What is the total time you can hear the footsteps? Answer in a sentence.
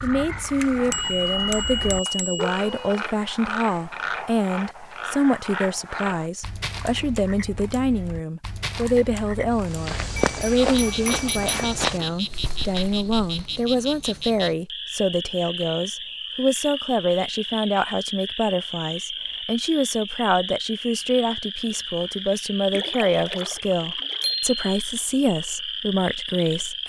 You can hear the footsteps for 4 seconds altogether.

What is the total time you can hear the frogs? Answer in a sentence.
You can hear the frogs for 27 seconds altogether.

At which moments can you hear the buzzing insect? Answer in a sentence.
The buzzing insect can't be heard in this clip.